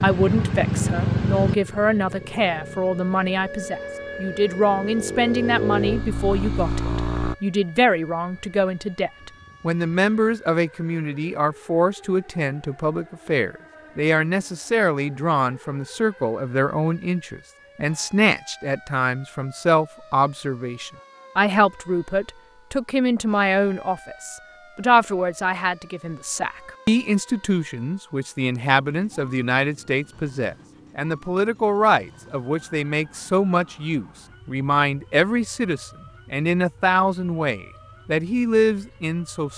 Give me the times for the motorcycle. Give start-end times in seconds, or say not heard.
0.0-7.3.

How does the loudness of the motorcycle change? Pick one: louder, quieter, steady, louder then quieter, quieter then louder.
quieter then louder.